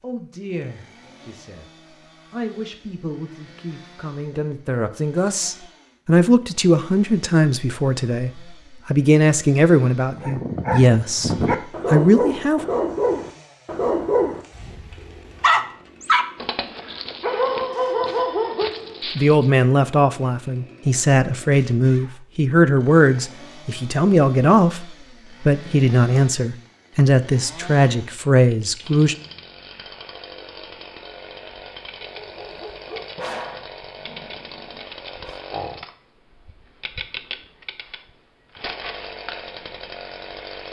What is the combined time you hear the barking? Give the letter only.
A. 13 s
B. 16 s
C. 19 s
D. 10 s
A.